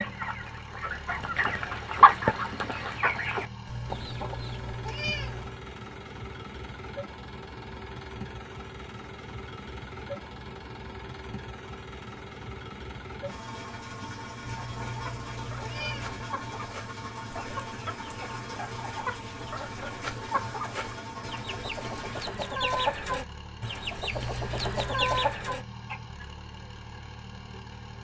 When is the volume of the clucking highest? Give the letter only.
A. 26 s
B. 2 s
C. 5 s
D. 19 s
B.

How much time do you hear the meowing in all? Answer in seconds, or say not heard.
5 s.